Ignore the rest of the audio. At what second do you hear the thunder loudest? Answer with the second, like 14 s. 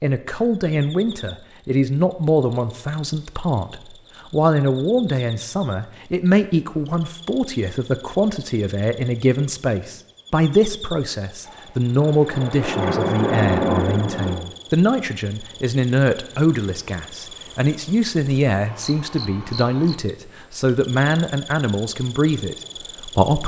14 s.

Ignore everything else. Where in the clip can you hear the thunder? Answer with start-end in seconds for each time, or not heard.
11.4-14.3.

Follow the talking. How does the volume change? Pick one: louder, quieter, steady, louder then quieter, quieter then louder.
steady.